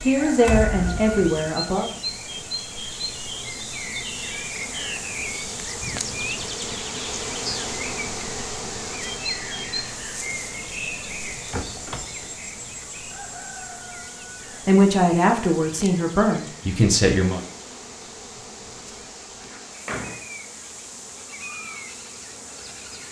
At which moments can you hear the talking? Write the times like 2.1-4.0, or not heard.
0.1-1.9, 14.7-17.4.